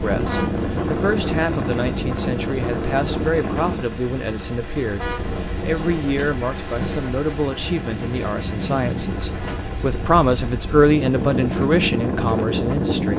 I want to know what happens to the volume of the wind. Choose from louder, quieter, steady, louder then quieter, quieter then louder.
quieter then louder.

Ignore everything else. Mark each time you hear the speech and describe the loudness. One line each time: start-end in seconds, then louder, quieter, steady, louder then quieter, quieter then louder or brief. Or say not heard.
0.0-13.1 louder.